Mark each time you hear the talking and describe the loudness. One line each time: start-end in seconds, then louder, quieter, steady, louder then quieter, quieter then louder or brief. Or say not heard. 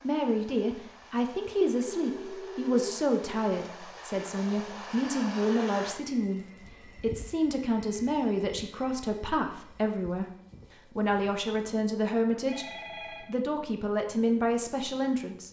0.0-15.4 steady.